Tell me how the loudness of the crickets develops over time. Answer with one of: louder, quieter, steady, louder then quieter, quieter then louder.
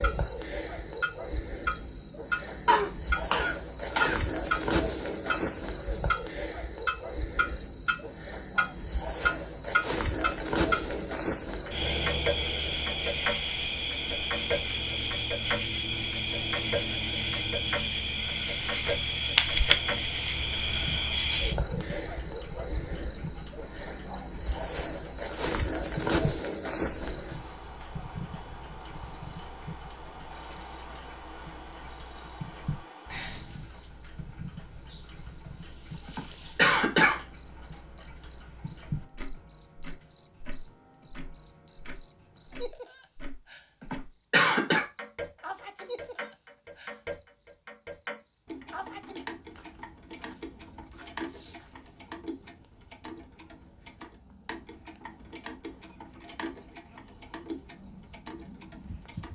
quieter.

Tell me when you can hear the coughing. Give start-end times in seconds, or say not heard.
2.6-4.2, 36.0-37.2, 43.8-44.9.